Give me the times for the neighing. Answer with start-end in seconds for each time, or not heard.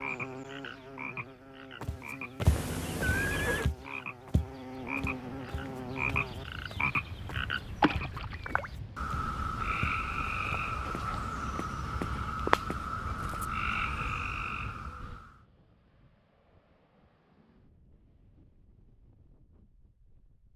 2.5-3.7.